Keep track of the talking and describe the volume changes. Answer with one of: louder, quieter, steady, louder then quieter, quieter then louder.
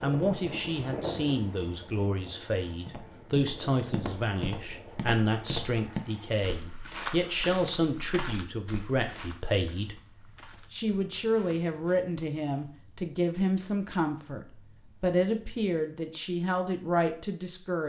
steady.